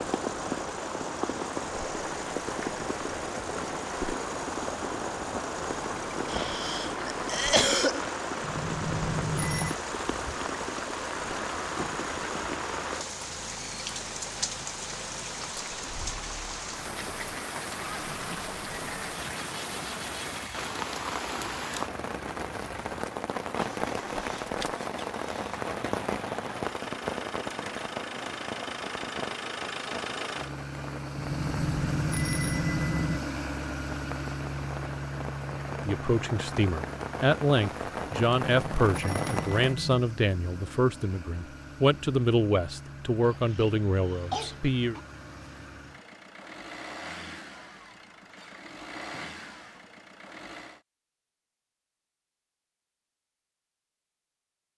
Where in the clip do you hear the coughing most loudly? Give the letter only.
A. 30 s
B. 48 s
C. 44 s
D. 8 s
D.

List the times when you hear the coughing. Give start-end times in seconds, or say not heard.
6.2-8.1, 43.2-45.0.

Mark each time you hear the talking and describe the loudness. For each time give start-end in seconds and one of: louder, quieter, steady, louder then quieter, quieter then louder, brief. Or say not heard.
35.7-45.0 steady.